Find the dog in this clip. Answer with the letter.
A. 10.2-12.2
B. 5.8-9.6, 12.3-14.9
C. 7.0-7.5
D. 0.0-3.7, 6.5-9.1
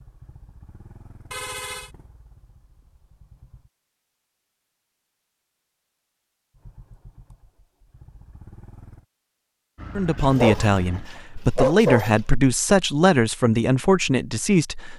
A.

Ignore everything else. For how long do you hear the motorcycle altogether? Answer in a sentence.
The motorcycle can be heard for 6 seconds in total.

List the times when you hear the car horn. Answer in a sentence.
The car horn can be heard from 1.3 to 1.9 s.